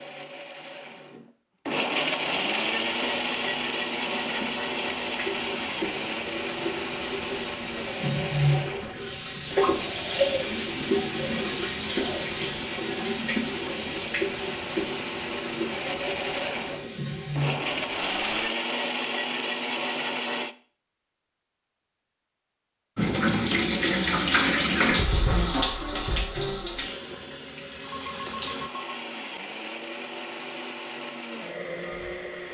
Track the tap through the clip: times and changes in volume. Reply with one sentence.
You can hear the tap from 2.1 to 18.5 s, getting louder then quieter; and from 22.9 to 28.7 s, getting quieter.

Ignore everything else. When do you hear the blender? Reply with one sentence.
The blender can be heard from 0.0 to 20.6 s and from 28.6 to 32.4 s.